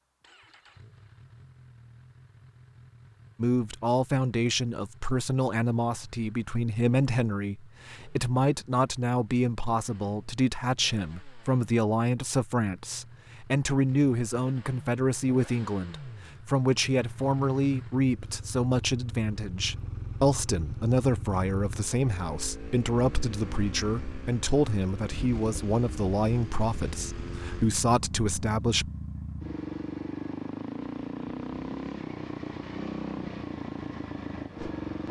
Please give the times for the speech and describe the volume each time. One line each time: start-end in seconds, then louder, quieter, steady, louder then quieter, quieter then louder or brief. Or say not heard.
3.4-28.9 steady.